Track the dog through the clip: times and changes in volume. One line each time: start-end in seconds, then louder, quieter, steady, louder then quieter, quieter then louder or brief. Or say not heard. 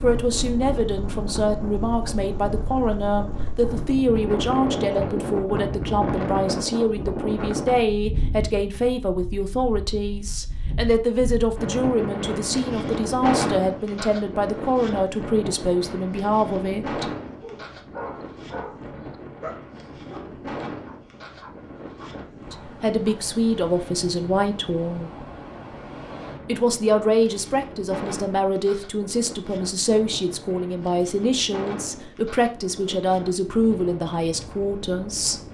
17.4-23.2 quieter.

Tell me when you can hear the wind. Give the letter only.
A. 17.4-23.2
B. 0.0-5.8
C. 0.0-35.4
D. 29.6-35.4
C.